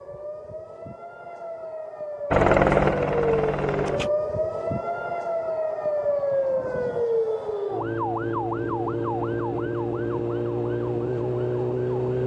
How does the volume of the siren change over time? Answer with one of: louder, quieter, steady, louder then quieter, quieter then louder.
louder.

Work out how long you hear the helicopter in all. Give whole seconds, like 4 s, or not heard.
2 s.